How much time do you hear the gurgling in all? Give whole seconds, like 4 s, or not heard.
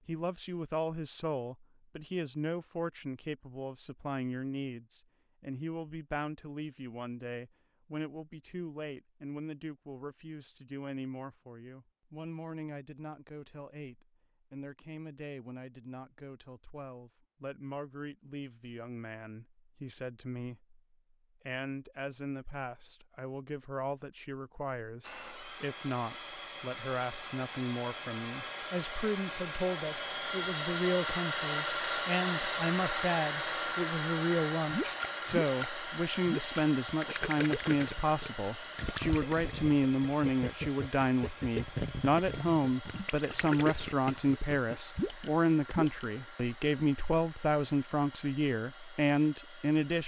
11 s.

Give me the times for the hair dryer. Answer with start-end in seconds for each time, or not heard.
25.0-50.0.